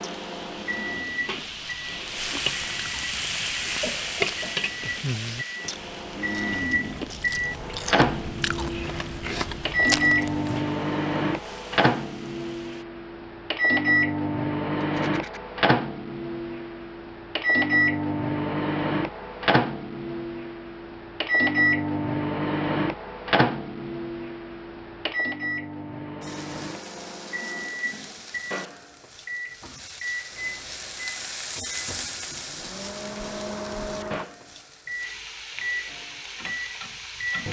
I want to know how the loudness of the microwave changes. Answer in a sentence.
The loudness of the microwave goes up, then down.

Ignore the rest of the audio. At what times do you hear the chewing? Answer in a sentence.
The chewing can be heard from 0.0 to 10.6 s.